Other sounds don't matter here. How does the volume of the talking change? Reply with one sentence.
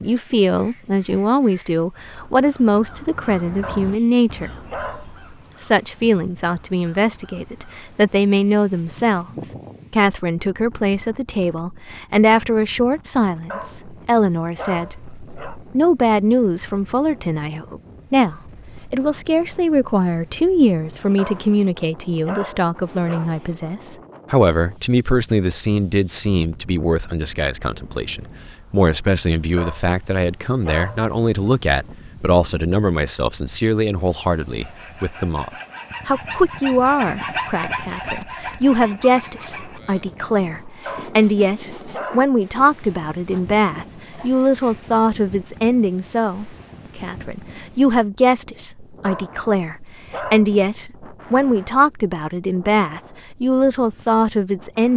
The volume of the talking stays about the same.